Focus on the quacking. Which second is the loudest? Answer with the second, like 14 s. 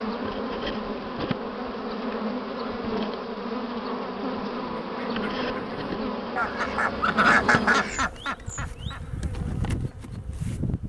7 s.